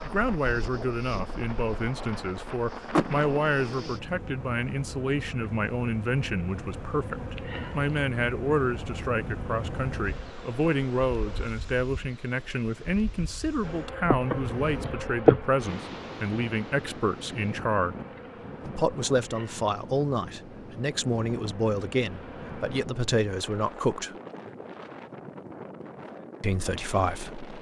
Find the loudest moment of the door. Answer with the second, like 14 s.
3 s.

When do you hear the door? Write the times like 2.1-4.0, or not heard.
2.9-3.7, 14.2-14.9.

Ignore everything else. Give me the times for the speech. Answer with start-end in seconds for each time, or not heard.
0.0-17.9, 18.6-24.1, 26.4-27.4.